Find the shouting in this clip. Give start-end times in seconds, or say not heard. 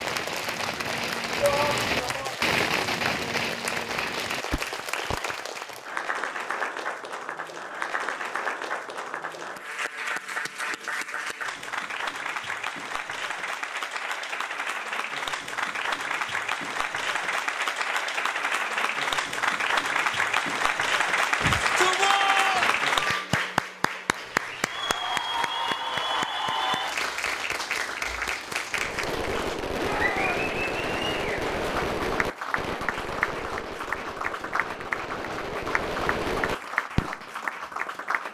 1.4-2.4, 21.4-22.8, 29.9-30.4.